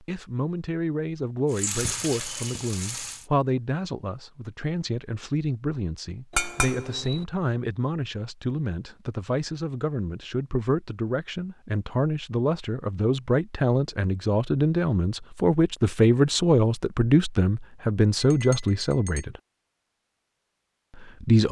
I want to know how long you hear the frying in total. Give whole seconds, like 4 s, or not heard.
2 s.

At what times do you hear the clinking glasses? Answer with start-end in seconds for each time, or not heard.
6.3-7.2, 18.2-19.2.